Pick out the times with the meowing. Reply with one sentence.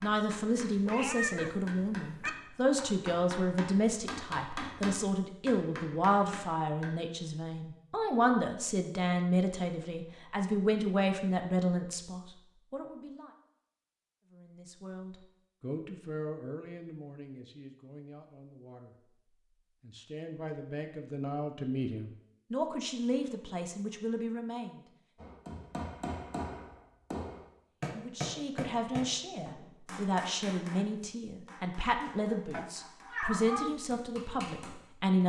The meowing can be heard from 0.8 to 2.3 s and from 32.5 to 33.7 s.